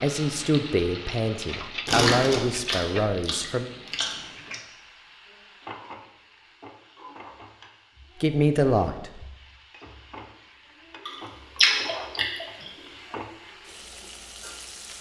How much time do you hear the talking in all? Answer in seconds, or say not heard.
5 s.